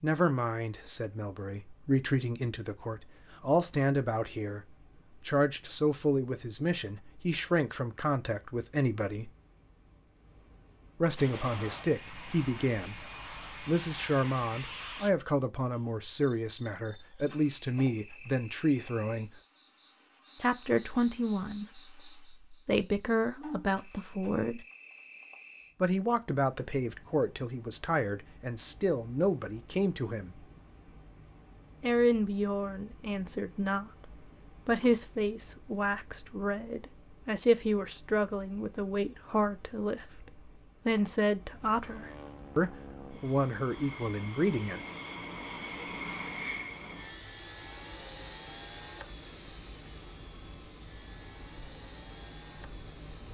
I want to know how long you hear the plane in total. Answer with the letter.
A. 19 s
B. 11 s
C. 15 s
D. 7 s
C.